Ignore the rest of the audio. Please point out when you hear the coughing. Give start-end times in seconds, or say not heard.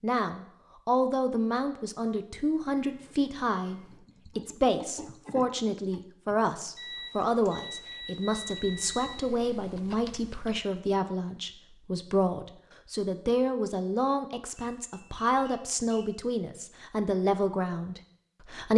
not heard.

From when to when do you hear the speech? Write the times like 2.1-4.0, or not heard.
0.0-18.7.